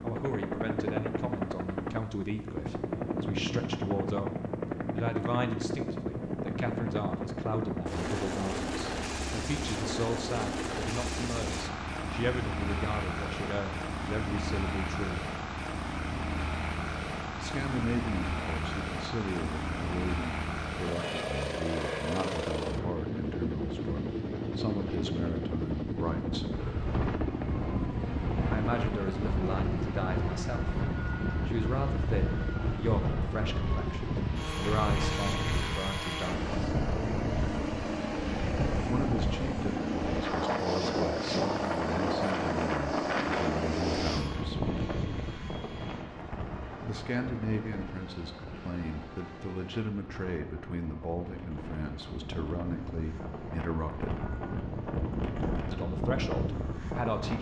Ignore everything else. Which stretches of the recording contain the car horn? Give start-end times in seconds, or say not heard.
not heard.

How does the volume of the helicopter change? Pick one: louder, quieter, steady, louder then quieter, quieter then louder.
quieter.